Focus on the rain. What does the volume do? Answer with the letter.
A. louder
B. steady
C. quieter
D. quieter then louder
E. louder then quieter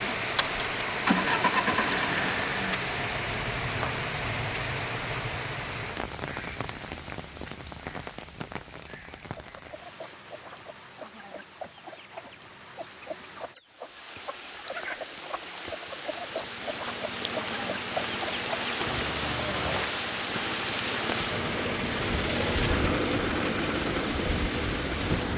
D.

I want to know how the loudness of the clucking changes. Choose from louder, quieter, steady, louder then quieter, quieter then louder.
louder.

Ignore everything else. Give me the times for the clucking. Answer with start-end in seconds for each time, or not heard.
9.3-19.9.